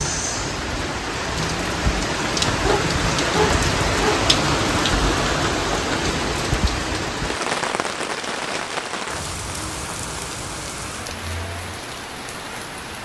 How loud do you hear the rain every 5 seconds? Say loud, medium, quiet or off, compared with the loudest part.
loud, loud, medium.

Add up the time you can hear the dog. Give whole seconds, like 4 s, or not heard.
2 s.